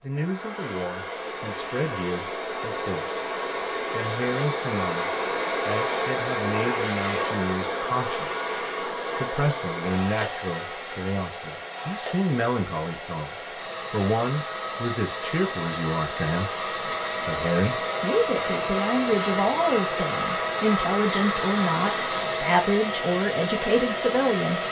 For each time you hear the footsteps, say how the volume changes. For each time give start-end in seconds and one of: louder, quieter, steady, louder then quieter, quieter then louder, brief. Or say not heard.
not heard.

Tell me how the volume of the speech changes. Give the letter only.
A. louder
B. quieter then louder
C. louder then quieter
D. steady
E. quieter
A.